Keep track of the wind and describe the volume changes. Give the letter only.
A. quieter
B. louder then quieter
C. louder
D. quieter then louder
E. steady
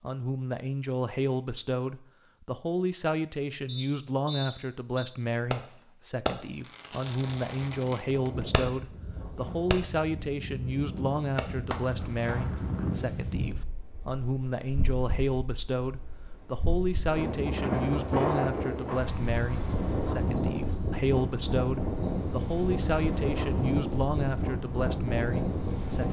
C.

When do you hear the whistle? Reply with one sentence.
The whistle can be heard from 3.6 to 5.0 s.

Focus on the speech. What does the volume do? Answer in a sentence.
The volume of the speech stays about the same.